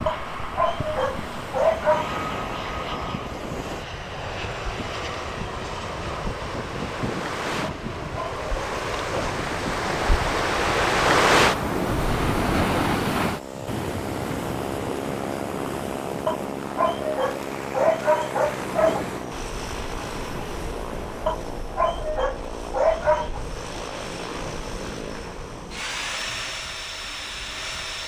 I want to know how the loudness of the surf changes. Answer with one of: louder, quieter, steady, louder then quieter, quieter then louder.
louder then quieter.